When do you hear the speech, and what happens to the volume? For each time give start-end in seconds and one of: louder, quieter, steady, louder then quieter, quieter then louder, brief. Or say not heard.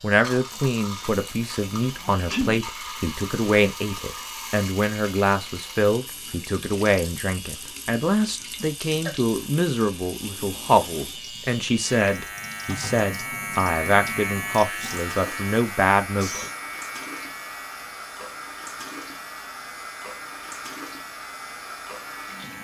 0.0-16.4 steady.